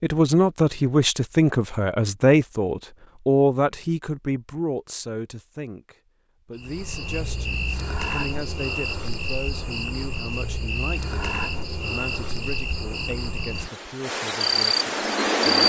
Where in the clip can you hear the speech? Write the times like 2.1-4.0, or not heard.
0.0-15.6.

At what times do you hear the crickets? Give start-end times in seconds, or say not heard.
6.5-15.6.